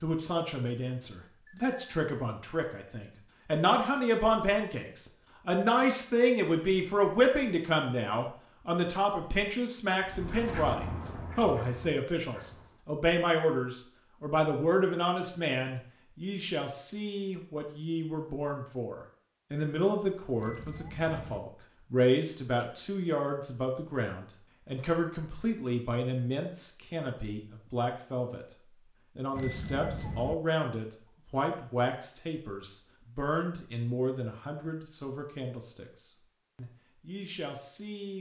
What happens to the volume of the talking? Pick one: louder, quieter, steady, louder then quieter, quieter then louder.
quieter.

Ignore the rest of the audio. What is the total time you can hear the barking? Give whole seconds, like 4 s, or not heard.
not heard.